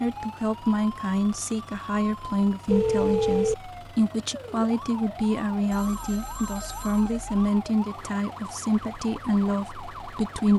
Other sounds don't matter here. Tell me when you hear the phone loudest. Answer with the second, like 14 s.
3 s.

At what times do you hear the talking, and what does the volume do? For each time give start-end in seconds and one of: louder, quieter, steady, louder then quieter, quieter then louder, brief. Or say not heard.
0.0-10.5 steady.